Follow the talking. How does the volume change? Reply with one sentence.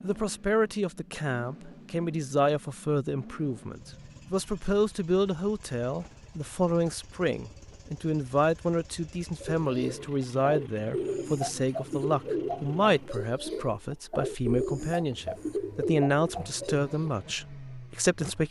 The loudness of the talking stays about the same.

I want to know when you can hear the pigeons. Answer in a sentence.
You can hear the pigeons from 9.4 to 17.1 s.